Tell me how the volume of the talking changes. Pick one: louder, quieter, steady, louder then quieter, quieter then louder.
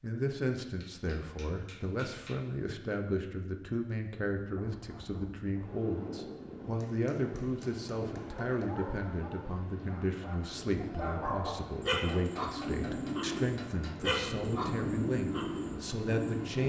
steady.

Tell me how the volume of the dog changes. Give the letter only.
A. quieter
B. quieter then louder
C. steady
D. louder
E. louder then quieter
D.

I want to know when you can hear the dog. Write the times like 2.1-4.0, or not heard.
8.2-16.6.